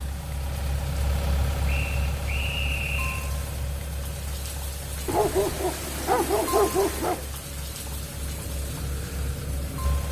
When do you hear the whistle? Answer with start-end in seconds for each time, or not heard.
1.6-3.3.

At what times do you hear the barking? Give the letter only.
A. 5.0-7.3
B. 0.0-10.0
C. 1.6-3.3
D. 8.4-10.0
A.